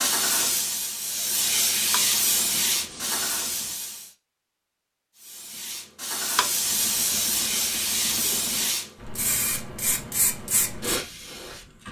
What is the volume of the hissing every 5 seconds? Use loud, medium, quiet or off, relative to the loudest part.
loud, loud, medium.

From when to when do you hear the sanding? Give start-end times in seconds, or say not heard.
1.9-3.8, 6.3-8.8.